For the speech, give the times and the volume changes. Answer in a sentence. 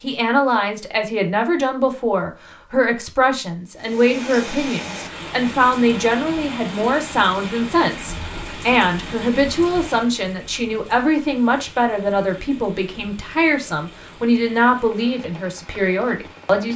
You can hear the speech from 0.0 to 16.7 s, at a steady volume.